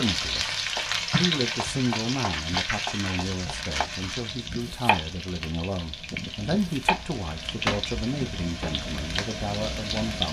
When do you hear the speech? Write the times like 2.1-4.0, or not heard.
0.0-0.6, 1.1-10.2.